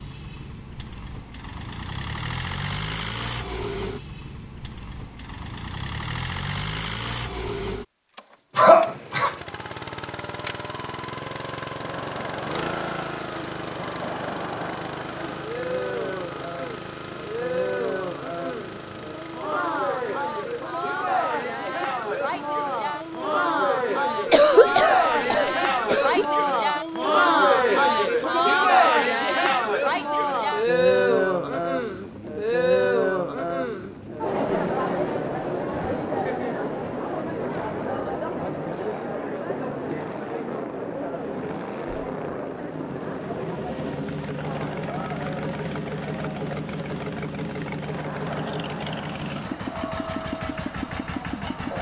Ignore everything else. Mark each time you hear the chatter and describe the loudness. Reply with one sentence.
The chatter can be heard from 11.8 to 51.7 s, getting louder then quieter.